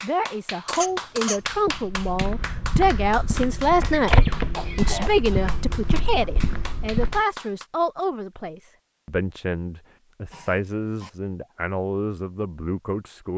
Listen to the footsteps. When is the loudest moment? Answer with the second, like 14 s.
4 s.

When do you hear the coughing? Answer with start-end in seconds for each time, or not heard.
0.7-1.5, 4.5-5.2, 10.3-11.1.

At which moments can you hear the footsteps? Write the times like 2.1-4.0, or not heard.
1.4-7.2.